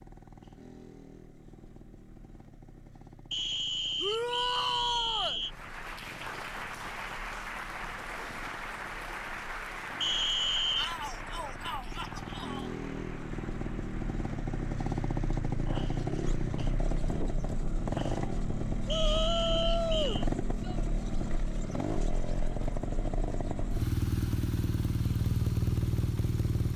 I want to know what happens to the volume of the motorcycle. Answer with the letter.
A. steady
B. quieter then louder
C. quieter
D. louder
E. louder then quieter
D.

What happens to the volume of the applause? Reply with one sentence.
The loudness of the applause goes down.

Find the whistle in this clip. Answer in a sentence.
You can hear the whistle from 3.3 to 5.5 s, from 10.0 to 11.0 s and from 18.9 to 20.3 s.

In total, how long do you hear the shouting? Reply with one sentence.
You can hear the shouting for 5 seconds altogether.